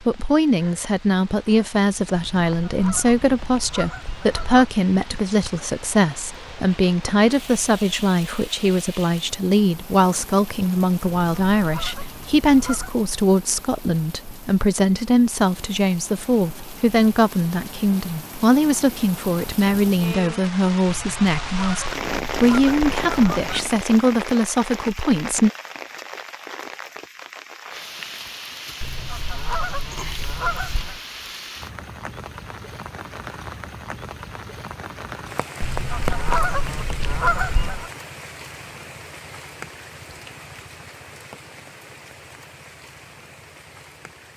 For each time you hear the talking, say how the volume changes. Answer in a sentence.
You can hear the talking from 0.1 to 25.5 s, at a steady volume.